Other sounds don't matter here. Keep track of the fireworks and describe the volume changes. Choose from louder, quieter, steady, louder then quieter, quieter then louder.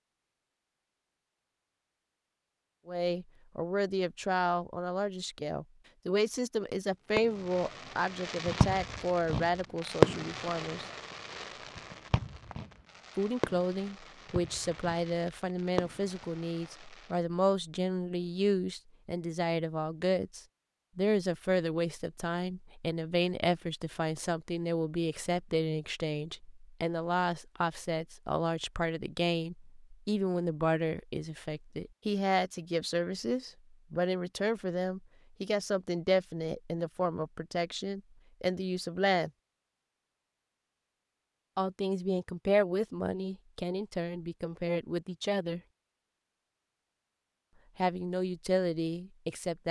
louder then quieter.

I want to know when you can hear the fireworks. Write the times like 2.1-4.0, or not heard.
7.2-17.1.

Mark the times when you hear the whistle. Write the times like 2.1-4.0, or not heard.
not heard.